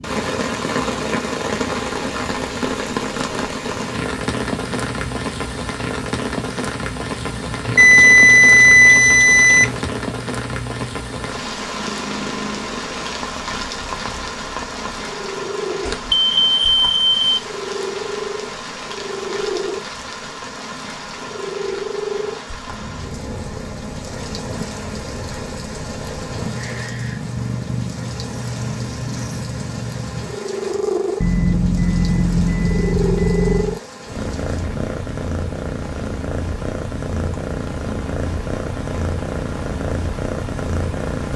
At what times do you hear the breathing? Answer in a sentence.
The breathing can't be heard in this clip.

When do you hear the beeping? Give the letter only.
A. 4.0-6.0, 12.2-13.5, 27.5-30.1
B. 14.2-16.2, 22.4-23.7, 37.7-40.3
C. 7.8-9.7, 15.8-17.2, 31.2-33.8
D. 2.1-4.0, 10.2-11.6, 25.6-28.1
C.